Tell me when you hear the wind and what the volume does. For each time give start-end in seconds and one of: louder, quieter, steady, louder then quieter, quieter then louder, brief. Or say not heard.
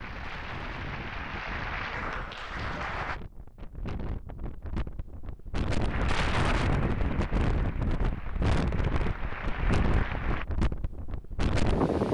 0.0-12.0 louder.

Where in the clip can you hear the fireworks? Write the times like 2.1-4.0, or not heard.
not heard.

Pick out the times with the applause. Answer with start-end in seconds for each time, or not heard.
0.0-3.2, 5.8-10.4.